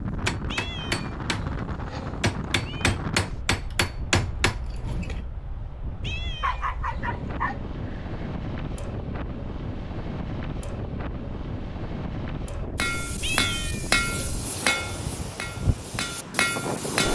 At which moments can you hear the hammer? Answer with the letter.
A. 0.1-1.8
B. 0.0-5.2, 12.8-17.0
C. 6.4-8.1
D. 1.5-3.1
B.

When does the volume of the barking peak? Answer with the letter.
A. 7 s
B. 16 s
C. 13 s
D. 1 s
A.